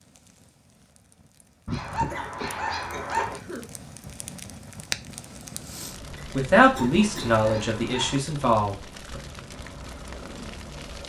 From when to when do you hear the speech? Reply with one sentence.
The speech can be heard from 6.3 to 9.2 s.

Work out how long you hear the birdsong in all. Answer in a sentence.
You can't hear the birdsong here.